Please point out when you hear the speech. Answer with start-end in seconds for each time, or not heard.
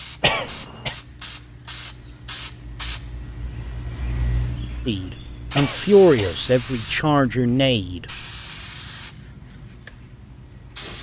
4.8-8.1.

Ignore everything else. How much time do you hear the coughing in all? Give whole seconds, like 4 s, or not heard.
2 s.